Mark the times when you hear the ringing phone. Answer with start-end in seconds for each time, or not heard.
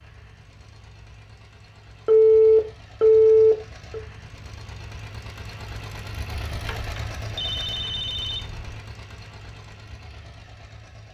2.0-4.0, 6.5-8.8.